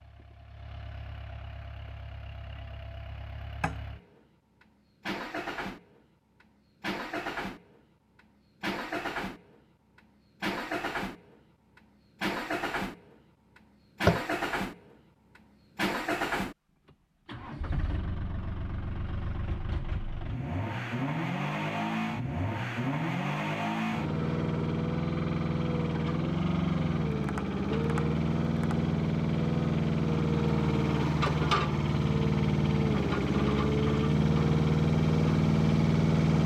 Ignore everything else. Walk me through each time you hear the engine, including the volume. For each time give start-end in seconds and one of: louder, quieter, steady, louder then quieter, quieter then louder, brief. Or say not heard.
0.0-36.4 louder.